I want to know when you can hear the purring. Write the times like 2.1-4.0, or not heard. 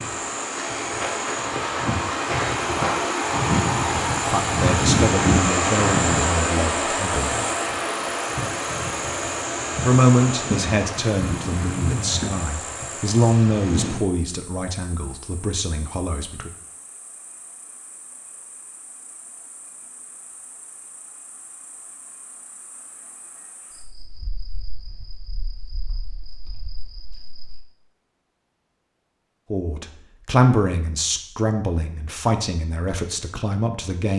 not heard.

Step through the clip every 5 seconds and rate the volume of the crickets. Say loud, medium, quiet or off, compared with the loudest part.
loud, loud, medium, quiet, quiet, quiet, off.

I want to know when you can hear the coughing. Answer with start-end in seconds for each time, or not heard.
11.2-12.3.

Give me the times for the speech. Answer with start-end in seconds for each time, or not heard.
4.2-7.4, 9.8-16.5, 29.5-34.1.